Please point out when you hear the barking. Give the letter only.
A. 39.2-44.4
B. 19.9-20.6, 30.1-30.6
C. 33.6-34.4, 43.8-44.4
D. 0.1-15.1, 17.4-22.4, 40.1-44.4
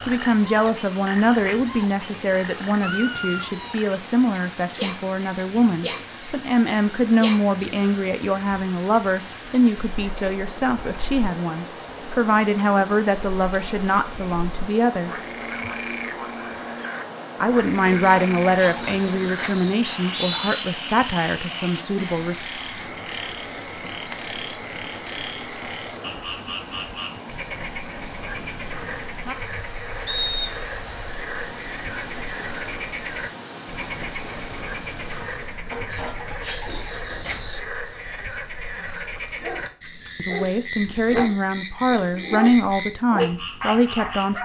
A.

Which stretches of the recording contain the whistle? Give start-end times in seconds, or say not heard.
19.9-20.6, 30.1-30.6.